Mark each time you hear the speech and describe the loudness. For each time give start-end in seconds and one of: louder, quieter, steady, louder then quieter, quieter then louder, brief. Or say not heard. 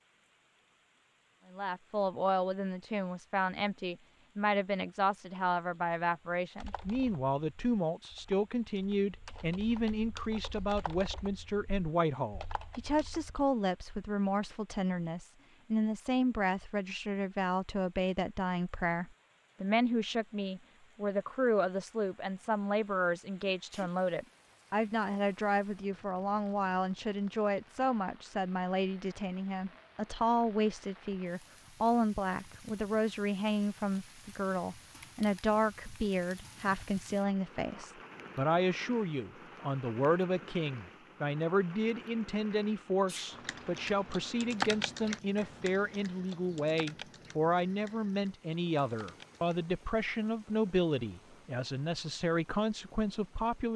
1.5-53.7 steady.